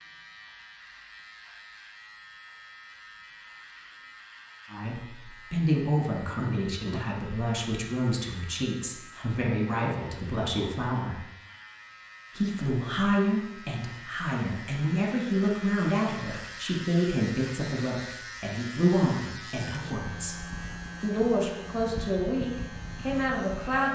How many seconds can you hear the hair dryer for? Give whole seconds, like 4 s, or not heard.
not heard.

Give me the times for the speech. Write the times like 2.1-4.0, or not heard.
4.7-11.2, 12.3-23.9.